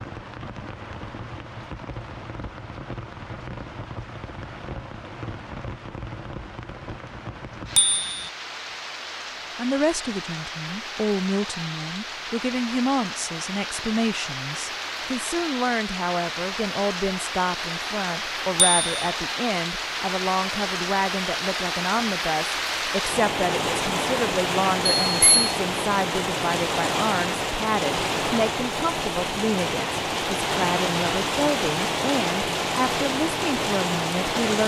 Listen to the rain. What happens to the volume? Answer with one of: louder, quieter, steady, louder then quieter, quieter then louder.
louder.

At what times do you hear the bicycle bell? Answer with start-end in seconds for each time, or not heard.
7.8-8.2, 18.6-19.1, 25.1-25.5.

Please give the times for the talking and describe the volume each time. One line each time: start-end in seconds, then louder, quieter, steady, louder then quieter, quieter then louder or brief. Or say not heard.
9.6-34.6 steady.